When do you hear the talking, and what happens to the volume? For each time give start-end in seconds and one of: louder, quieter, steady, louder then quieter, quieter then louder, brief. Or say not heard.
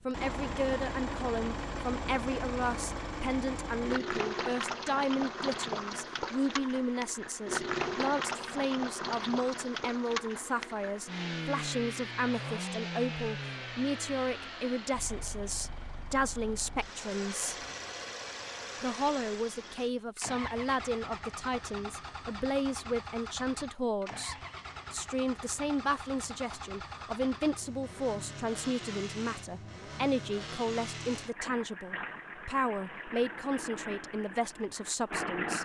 0.1-17.6 steady
18.8-35.6 steady.